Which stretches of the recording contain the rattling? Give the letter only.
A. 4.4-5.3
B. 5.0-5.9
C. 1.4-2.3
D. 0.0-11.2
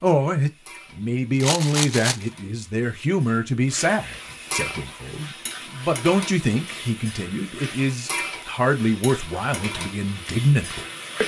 C.